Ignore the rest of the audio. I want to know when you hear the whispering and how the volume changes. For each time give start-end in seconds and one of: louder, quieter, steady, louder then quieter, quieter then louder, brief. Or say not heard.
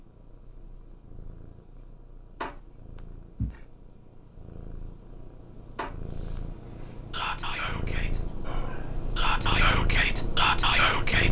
7.1-11.2 quieter then louder.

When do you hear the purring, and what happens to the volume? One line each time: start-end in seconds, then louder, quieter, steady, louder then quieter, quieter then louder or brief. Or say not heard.
0.0-11.2 louder.